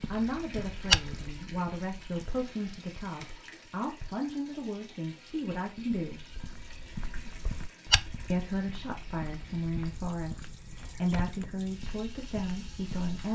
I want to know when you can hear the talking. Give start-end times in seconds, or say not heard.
0.1-6.3, 8.3-13.3.